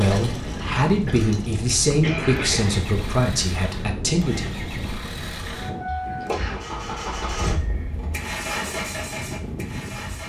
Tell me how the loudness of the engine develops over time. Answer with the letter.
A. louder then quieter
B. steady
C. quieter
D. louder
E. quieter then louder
D.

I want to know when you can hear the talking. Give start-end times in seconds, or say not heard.
0.0-4.6.